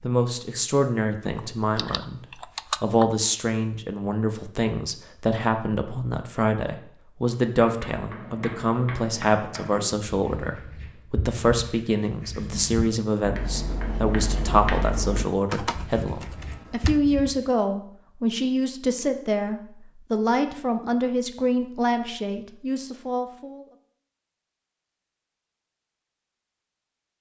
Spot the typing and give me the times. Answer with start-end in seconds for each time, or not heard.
1.4-3.0, 15.4-17.0.